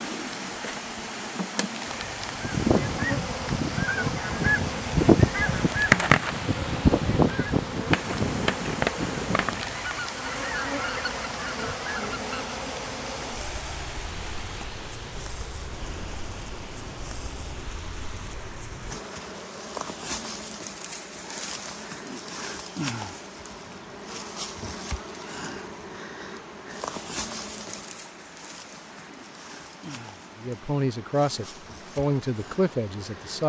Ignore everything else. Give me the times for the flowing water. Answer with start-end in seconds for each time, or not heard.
0.0-33.4.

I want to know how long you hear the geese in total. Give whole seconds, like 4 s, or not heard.
10 s.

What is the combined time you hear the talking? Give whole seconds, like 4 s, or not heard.
3 s.